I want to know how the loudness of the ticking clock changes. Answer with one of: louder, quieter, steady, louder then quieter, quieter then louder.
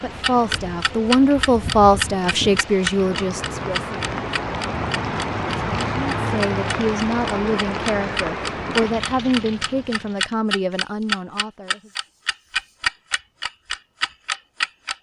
quieter then louder.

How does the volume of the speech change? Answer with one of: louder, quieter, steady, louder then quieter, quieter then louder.
quieter.